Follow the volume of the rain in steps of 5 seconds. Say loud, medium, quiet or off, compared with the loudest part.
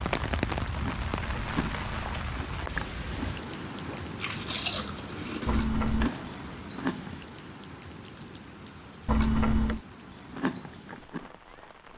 loud, medium, quiet.